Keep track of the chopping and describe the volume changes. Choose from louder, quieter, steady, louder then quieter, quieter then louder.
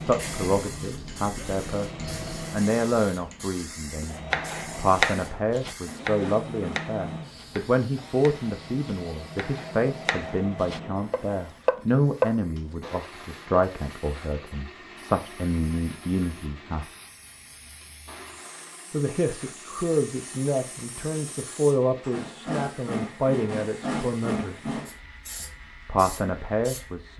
quieter then louder.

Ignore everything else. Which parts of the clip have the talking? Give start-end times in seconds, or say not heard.
0.0-16.9, 18.9-24.8, 25.4-27.1.